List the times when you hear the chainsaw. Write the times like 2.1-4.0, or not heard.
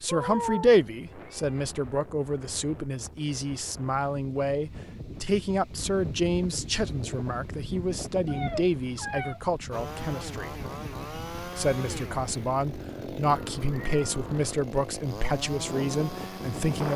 9.7-16.9.